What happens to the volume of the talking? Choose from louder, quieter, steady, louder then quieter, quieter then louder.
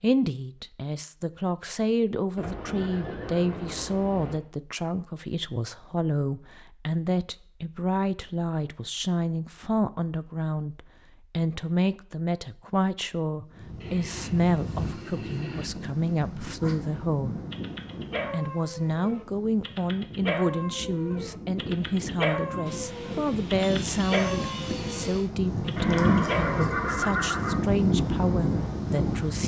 steady.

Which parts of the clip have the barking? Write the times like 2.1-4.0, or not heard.
16.9-26.6.